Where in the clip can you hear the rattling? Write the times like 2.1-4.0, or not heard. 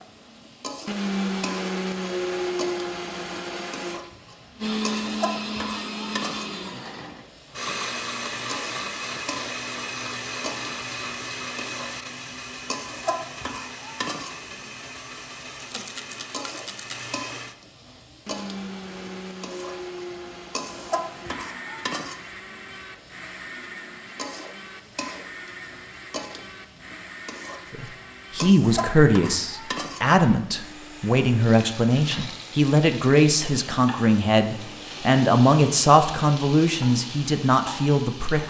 15.6-17.1.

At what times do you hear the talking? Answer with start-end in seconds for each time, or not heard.
27.7-38.4.